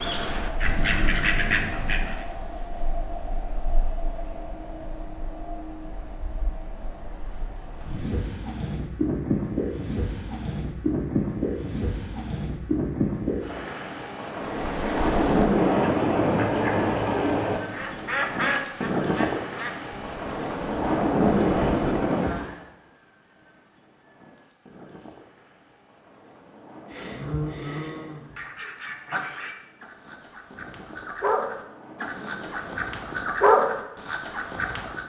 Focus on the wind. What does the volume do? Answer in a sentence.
The volume of the wind goes up, then down.